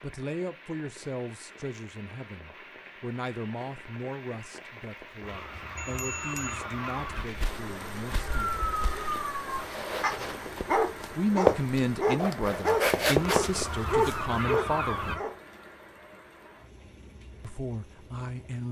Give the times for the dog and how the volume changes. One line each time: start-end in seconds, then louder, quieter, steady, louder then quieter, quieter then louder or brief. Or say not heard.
8.2-15.3 louder.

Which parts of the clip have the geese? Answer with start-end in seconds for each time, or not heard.
5.2-7.2, 13.2-15.2.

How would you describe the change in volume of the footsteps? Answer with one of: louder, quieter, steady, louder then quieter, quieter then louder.
louder.